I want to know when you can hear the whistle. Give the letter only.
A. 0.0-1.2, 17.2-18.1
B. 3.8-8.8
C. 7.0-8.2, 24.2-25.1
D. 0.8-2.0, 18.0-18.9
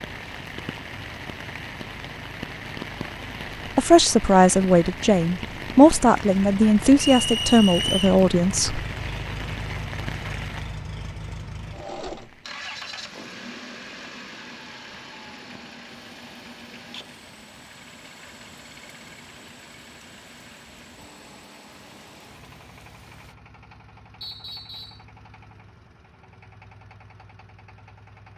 C.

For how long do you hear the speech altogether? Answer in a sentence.
The speech can be heard for 5 seconds in total.